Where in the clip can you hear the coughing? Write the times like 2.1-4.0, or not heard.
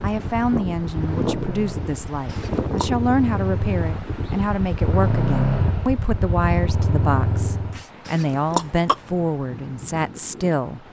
2.2-2.9, 8.1-8.9.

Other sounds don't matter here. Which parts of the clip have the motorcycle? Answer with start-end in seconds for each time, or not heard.
0.0-7.8.